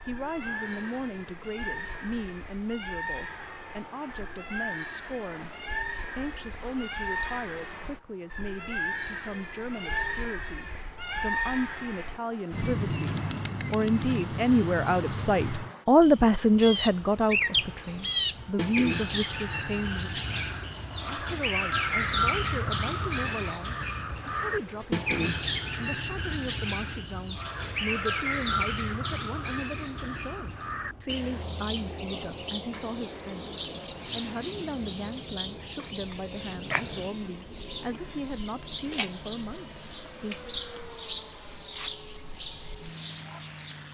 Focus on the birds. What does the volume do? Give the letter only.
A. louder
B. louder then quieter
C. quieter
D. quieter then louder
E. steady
B.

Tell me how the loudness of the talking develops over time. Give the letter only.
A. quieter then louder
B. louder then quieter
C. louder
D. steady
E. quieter
B.